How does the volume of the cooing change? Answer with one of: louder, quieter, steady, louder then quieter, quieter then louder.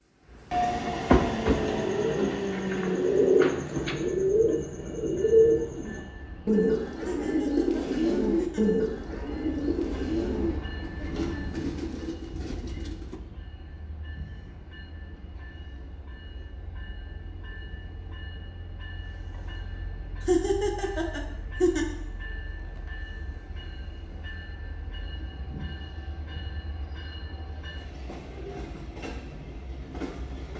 quieter.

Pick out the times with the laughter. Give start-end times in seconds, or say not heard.
7.0-8.7, 20.2-21.9.